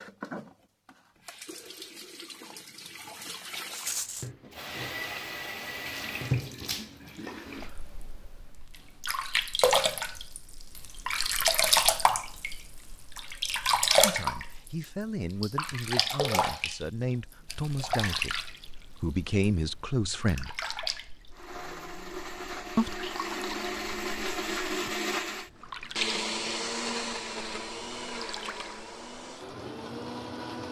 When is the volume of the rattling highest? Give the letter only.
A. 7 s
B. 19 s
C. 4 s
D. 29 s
C.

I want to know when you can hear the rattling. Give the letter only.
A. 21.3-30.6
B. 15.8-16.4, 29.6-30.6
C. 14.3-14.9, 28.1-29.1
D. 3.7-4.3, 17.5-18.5
D.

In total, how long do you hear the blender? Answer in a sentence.
You can hear the blender for 9 seconds altogether.